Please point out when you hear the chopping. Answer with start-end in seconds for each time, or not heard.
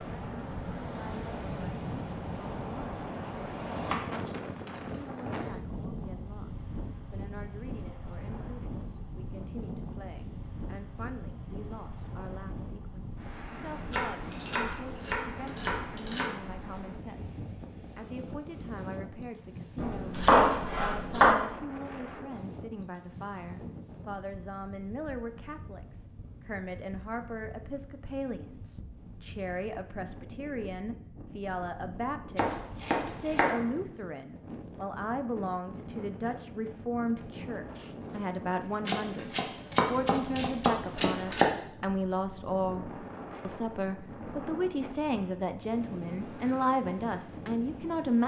3.9-5.0, 13.9-16.4, 19.8-21.4, 32.4-33.6, 38.9-41.5.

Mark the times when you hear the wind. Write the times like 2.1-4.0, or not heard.
0.0-48.2.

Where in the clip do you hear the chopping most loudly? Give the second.
20 s.